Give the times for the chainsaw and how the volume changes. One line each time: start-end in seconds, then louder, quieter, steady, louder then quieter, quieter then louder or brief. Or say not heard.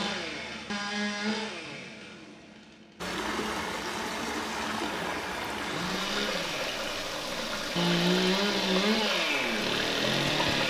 0.0-10.6 quieter then louder.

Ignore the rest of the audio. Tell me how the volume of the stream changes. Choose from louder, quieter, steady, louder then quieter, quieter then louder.
steady.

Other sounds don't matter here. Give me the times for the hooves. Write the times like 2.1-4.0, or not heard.
not heard.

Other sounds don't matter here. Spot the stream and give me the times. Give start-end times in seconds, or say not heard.
3.0-10.6.